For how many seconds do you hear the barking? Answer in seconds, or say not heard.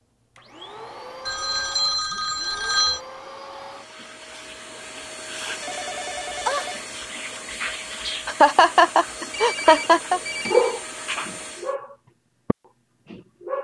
3 s.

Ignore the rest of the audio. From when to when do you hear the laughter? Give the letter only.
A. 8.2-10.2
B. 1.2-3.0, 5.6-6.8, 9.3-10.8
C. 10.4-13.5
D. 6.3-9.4
A.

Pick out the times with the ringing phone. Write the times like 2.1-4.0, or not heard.
1.2-3.0, 5.6-6.8, 9.3-10.8.